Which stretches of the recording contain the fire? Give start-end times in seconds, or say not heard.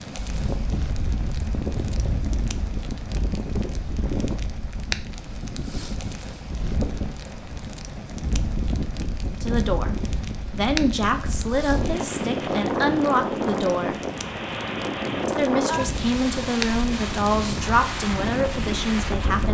0.0-19.2.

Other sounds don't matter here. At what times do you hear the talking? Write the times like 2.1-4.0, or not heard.
9.3-14.0, 15.2-19.4.